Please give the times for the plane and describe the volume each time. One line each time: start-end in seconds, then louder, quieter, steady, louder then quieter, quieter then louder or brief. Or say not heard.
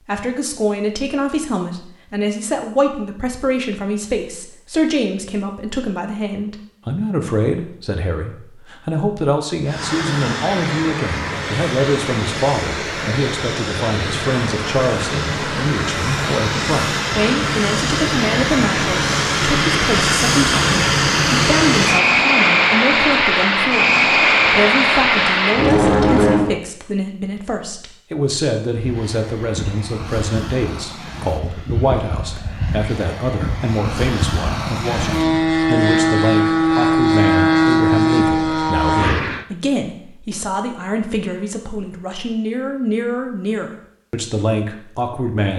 9.7-26.6 louder
28.8-39.5 louder.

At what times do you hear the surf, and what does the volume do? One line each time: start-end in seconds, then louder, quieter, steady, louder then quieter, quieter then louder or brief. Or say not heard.
not heard.